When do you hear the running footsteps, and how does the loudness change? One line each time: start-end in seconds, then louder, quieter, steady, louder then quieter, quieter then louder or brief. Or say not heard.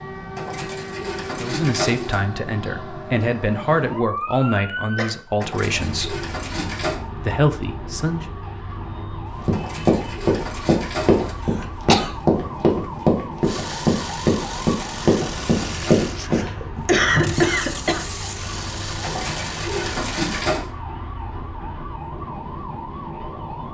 9.4-16.5 steady.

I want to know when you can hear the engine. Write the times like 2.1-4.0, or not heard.
13.4-20.5.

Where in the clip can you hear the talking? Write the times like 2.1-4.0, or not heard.
1.4-6.2, 7.2-8.2.